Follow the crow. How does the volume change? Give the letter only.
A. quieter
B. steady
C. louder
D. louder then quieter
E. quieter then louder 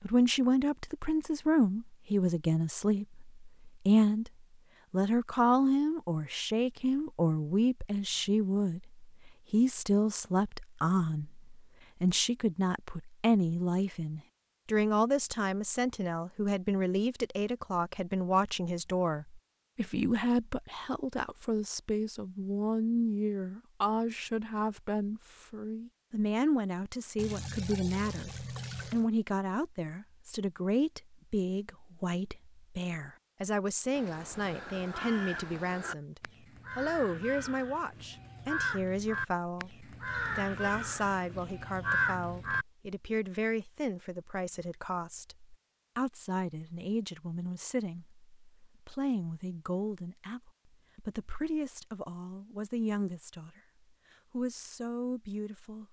C.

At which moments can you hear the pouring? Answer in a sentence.
The pouring can be heard from 27.1 to 29.1 s.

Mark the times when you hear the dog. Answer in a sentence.
The dog can't be heard in this clip.